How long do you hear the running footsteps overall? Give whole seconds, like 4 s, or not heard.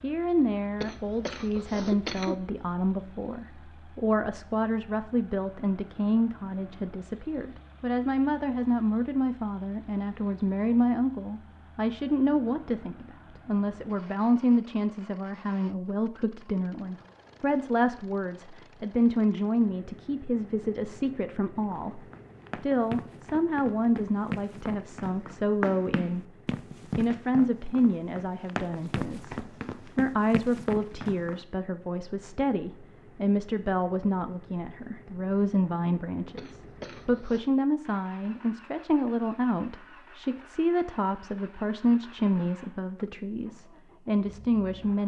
10 s.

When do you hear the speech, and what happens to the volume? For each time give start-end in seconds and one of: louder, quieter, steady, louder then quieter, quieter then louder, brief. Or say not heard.
0.0-26.2 steady
26.9-45.0 steady.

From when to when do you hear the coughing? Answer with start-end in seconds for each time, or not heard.
0.8-2.4, 36.4-37.5.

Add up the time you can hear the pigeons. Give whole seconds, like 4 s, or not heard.
not heard.